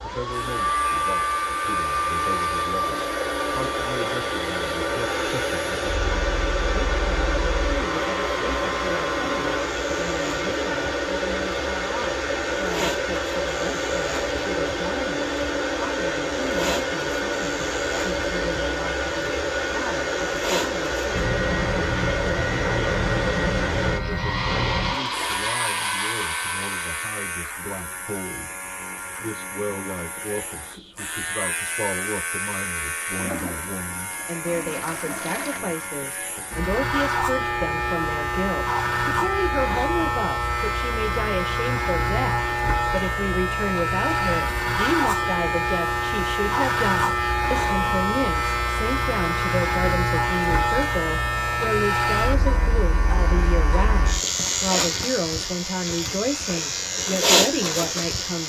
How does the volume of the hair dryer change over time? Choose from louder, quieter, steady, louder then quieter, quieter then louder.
steady.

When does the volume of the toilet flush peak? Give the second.
35 s.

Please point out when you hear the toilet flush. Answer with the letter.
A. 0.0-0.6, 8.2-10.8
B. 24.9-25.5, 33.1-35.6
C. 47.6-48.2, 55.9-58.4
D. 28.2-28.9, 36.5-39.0
B.